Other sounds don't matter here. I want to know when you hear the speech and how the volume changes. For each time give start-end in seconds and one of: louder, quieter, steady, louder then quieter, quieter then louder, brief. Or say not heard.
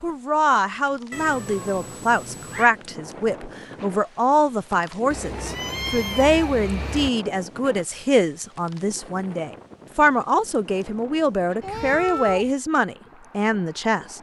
0.0-14.1 steady.